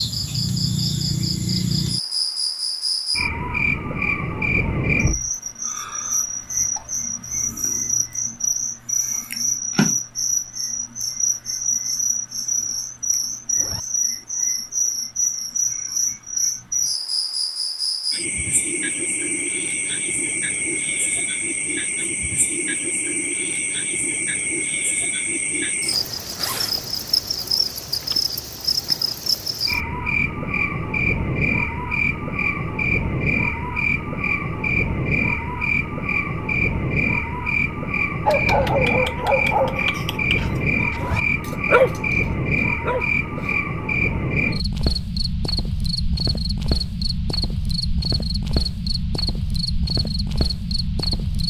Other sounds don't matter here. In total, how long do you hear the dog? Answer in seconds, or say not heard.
5 s.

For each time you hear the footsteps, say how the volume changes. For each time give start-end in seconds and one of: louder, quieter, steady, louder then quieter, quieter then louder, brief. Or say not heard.
not heard.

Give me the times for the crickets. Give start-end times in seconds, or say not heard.
0.0-51.4.